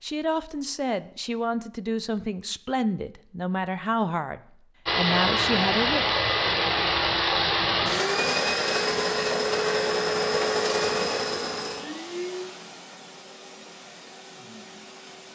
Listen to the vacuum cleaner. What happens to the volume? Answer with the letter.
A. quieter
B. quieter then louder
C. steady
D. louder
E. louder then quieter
A.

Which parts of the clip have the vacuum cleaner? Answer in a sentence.
The vacuum cleaner can be heard from 4.8 to 15.3 s.